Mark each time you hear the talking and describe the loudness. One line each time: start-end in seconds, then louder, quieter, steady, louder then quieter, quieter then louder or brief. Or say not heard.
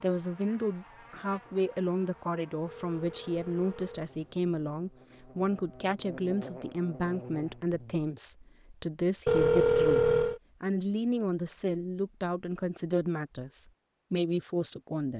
0.0-15.1 steady.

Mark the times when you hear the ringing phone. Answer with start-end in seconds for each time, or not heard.
2.6-4.5, 9.2-10.4.